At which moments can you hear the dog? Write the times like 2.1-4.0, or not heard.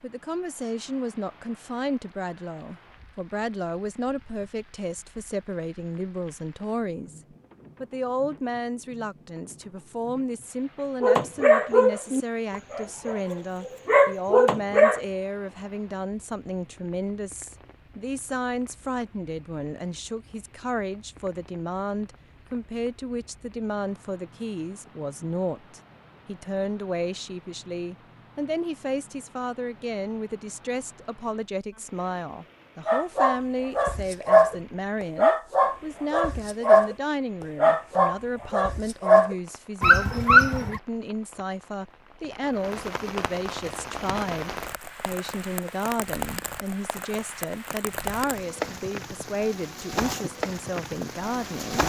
11.0-15.0, 32.9-34.5, 35.1-37.0, 37.5-40.8.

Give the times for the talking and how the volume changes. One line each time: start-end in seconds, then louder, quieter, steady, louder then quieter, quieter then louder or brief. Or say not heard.
0.0-7.2 steady
7.8-51.8 steady.